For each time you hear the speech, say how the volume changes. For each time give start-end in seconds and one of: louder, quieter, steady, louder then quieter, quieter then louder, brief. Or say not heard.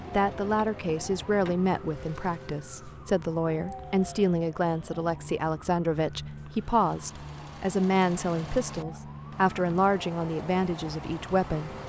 0.0-11.7 steady.